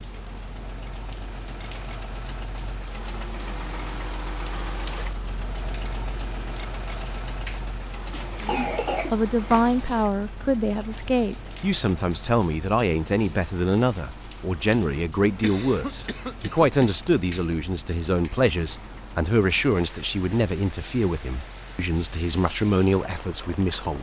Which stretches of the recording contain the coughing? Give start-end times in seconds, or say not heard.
8.1-9.7, 15.2-16.9.